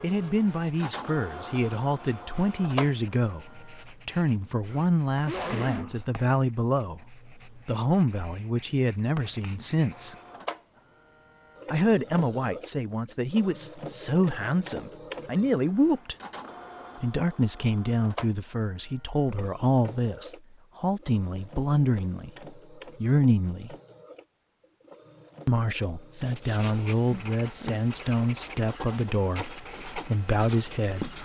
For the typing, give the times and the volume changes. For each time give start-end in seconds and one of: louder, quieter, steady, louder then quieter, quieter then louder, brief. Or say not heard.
not heard.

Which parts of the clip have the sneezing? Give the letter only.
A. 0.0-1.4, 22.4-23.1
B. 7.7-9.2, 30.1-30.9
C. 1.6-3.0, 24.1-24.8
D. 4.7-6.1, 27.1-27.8
D.